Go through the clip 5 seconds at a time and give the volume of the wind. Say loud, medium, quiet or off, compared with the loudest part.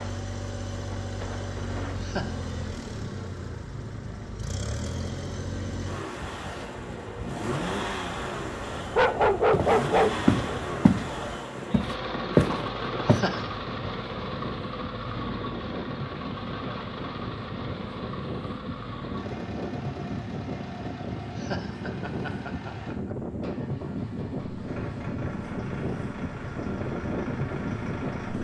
medium, medium, medium, loud, loud, loud.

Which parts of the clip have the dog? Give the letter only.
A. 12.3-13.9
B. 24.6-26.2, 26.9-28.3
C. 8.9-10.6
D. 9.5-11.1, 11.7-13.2
C.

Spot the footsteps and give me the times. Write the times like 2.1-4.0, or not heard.
9.5-11.1, 11.7-13.2.